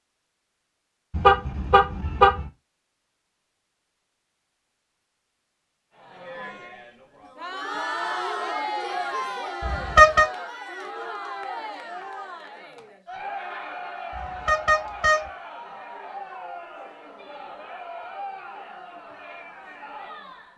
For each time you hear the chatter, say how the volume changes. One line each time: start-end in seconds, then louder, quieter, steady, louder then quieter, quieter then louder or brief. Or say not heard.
6.0-20.5 quieter.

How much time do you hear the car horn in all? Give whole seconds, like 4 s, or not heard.
3 s.